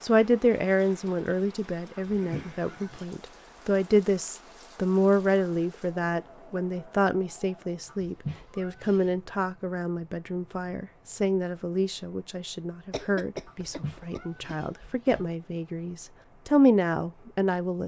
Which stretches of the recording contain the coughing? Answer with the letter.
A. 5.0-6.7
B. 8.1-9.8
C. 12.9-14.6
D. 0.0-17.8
C.